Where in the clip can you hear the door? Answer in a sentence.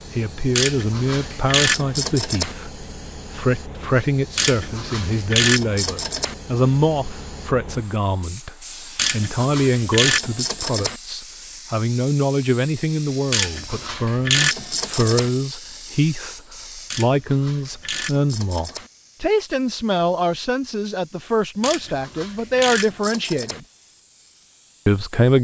You can't hear the door here.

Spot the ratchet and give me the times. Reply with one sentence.
The ratchet can be heard from 0.6 to 2.5 s, from 4.3 to 6.3 s, from 8.9 to 11.0 s, from 13.3 to 15.3 s, from 16.9 to 18.9 s and from 21.6 to 23.6 s.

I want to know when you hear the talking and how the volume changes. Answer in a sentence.
You can hear the talking from 0.1 to 23.6 s, at a steady volume; and briefly from 24.9 to 25.3 s.